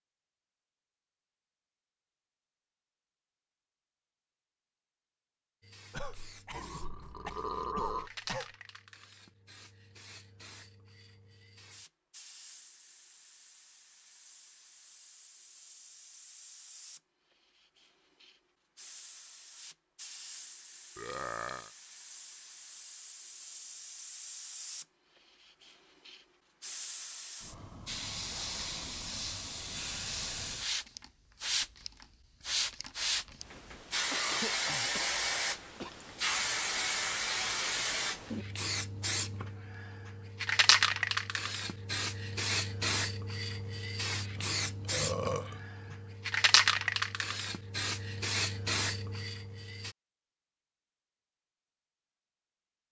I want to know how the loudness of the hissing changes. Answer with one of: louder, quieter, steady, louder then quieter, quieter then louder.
louder.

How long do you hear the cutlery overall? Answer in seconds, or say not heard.
not heard.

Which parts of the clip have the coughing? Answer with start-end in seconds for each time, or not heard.
5.9-8.6, 33.2-35.9.